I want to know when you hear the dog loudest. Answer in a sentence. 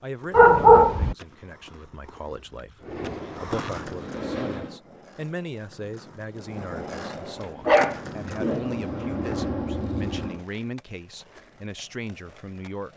The volume of the dog peaks at 1 second.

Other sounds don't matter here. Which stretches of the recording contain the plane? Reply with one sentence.
The plane can be heard from 2.8 to 4.8 s and from 7.4 to 10.4 s.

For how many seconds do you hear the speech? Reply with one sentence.
You can hear the speech for 13 seconds altogether.